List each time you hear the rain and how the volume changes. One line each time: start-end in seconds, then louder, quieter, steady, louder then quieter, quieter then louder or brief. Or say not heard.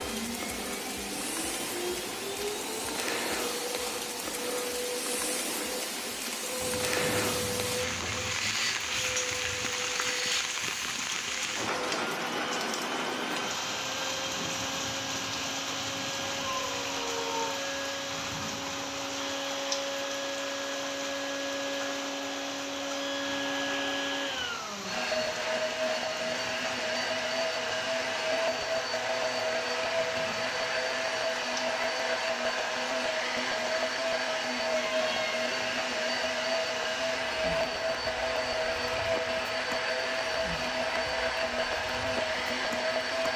0.0-43.3 quieter.